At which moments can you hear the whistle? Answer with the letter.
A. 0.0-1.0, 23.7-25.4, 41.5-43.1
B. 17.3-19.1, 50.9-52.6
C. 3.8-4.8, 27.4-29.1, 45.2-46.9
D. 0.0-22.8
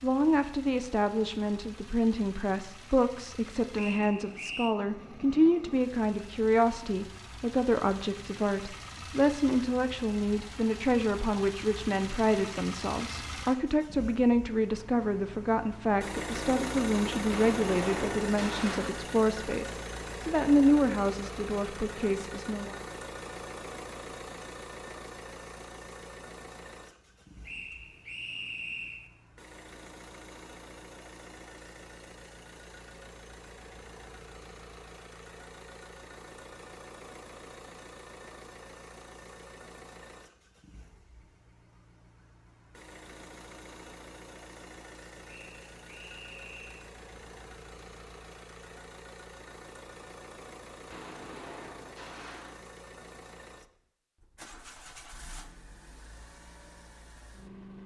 C.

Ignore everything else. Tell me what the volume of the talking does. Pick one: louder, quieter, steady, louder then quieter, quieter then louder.
steady.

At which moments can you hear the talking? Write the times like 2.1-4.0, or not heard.
0.0-22.8.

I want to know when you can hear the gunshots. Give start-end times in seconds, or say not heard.
17.3-19.1, 50.9-52.6.